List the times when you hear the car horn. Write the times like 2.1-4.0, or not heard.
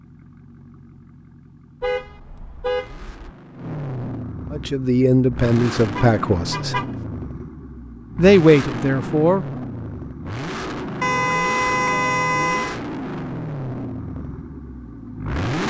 1.8-3.3, 6.0-6.9, 11.0-12.8.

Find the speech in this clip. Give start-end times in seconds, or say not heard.
4.5-6.8, 8.2-9.4.